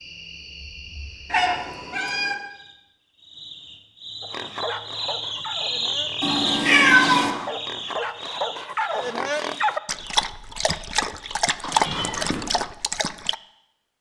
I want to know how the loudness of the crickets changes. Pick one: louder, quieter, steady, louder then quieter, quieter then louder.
louder then quieter.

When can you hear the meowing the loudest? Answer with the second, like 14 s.
7 s.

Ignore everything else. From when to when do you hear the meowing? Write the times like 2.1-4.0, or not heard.
1.3-2.4, 6.2-7.3, 11.6-12.4.